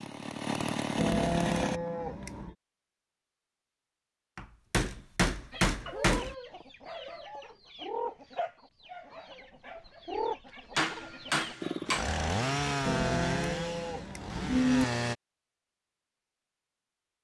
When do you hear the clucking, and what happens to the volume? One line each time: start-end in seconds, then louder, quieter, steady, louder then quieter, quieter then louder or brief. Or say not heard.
5.5-11.6 quieter then louder.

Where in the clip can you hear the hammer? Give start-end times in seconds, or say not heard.
4.3-6.3, 10.8-12.1.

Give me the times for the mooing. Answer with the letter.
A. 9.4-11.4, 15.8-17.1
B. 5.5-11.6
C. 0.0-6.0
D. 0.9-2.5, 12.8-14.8
D.